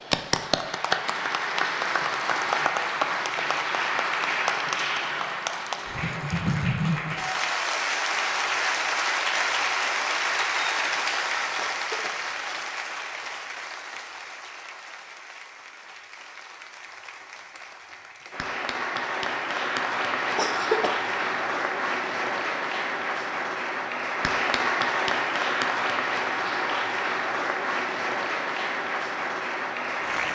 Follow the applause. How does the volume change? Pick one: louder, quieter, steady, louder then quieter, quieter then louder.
quieter then louder.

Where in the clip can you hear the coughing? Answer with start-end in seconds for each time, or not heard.
11.6-12.2, 20.4-21.0.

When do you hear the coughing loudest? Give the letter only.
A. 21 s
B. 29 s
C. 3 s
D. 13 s
A.